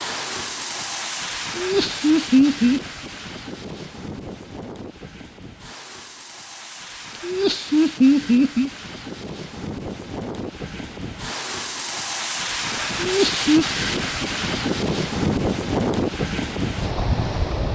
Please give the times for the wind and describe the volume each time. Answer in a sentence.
The wind can be heard from 0.0 to 17.7 s, getting quieter then louder.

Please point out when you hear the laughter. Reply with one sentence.
You can hear the laughter from 1.6 to 2.8 s, from 7.2 to 8.7 s and from 12.9 to 13.7 s.